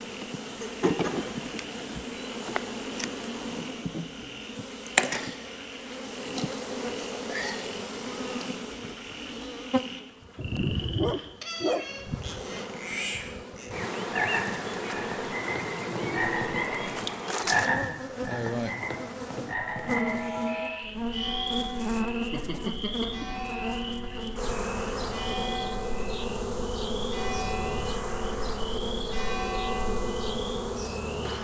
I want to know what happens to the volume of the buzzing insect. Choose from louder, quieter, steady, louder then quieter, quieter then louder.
steady.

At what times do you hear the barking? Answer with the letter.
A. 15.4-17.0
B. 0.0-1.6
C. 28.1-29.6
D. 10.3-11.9
D.